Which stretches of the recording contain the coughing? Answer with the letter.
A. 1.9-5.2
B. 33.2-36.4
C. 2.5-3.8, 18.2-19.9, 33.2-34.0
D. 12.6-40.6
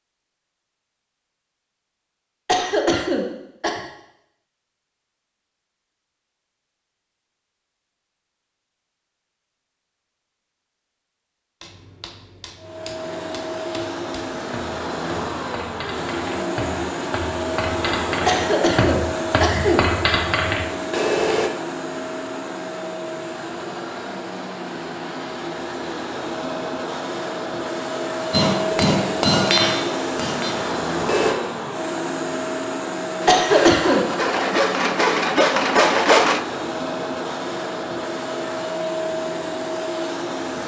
C.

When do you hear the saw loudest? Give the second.
36 s.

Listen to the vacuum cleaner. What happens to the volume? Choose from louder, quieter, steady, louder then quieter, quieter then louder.
steady.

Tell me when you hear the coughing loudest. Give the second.
34 s.